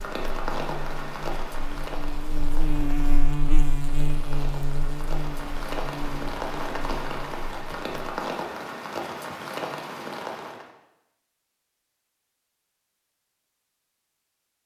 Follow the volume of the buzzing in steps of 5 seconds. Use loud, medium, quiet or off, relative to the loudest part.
loud, medium, off.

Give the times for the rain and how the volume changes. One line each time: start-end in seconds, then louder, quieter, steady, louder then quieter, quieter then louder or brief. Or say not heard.
0.0-10.7 quieter then louder.